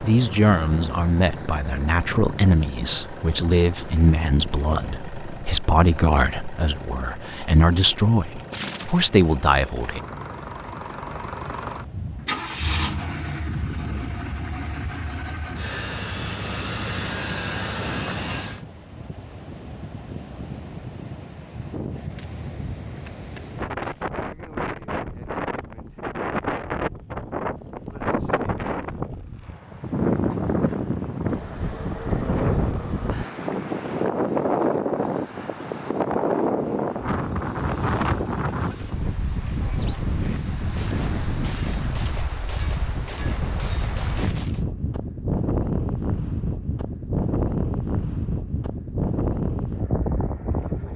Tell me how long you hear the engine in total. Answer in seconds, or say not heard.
19 s.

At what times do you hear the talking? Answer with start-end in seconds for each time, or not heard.
0.0-10.0.